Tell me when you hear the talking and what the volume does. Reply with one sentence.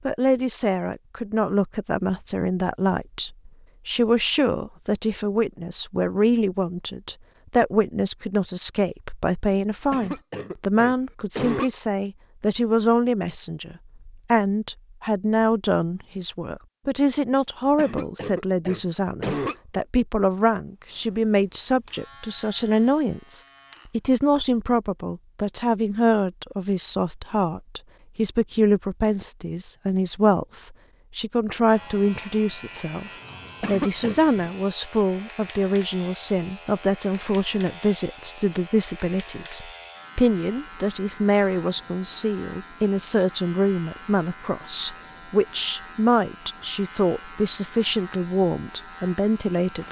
The talking can be heard from 0.1 to 49.8 s, at a steady volume.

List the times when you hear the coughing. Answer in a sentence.
The coughing can be heard from 9.9 to 11.7 s, from 17.8 to 19.8 s and from 33.6 to 34.2 s.